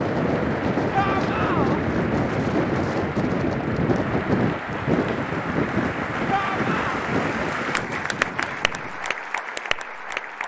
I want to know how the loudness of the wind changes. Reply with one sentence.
The volume of the wind goes down.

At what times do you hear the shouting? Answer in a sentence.
The shouting can be heard from 0.9 to 1.8 s and from 6.2 to 7.0 s.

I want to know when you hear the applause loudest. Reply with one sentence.
The volume of the applause peaks at 8 seconds.